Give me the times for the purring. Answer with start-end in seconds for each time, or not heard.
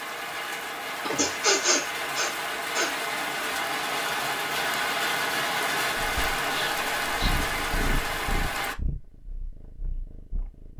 6.0-10.7.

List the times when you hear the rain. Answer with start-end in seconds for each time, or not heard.
0.0-8.8.